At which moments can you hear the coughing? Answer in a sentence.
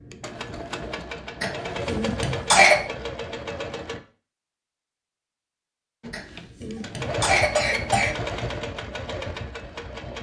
The coughing can be heard from 1.4 to 2.8 s and from 6.1 to 8.2 s.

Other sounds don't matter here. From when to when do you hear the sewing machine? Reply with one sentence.
You can hear the sewing machine from 0.0 to 4.0 s and from 6.0 to 10.1 s.